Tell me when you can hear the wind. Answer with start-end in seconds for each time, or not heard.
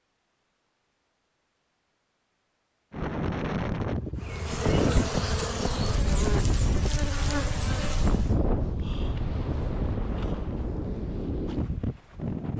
2.9-12.5.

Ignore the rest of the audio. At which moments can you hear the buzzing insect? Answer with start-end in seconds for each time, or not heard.
4.2-8.3.